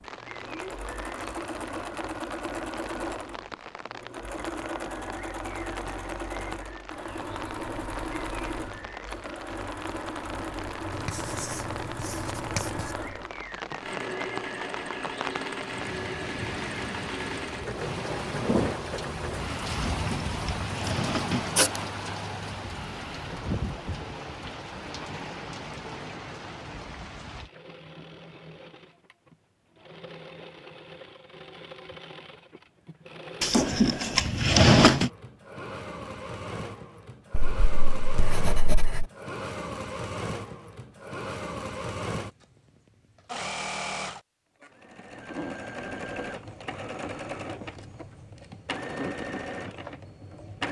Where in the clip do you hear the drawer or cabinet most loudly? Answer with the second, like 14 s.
35 s.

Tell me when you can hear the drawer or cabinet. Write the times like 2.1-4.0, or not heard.
19.7-21.5, 33.4-35.1.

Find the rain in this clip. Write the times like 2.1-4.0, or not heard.
0.0-27.5.